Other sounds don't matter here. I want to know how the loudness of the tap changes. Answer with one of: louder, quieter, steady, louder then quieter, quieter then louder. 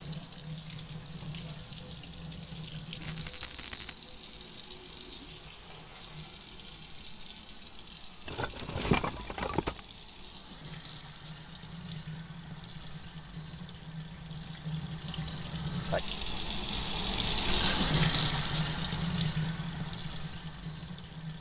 louder.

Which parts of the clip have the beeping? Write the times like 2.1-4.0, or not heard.
not heard.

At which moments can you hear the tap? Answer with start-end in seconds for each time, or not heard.
0.0-21.3.